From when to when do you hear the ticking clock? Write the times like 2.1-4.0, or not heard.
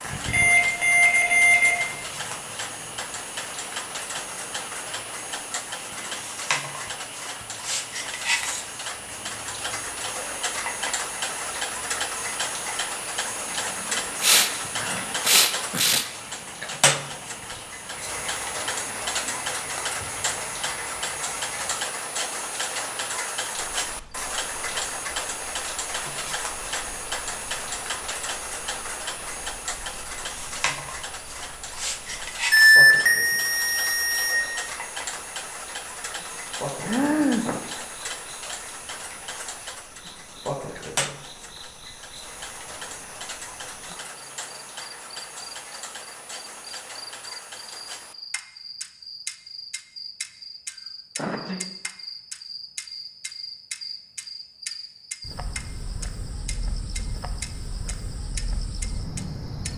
0.0-59.7.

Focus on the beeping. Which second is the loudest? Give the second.
33 s.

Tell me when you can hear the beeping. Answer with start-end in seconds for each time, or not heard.
0.2-1.8, 32.5-34.4.